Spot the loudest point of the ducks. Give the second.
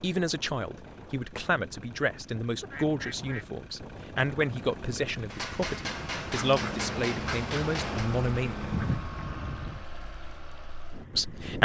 9 s.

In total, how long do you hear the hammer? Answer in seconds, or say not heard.
3 s.